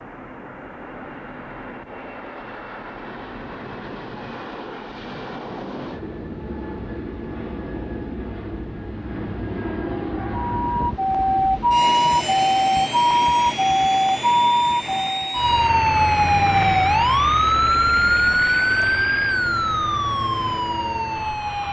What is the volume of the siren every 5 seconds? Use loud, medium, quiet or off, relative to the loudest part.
off, off, loud, loud, medium.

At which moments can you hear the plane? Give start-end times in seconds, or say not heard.
0.0-21.6.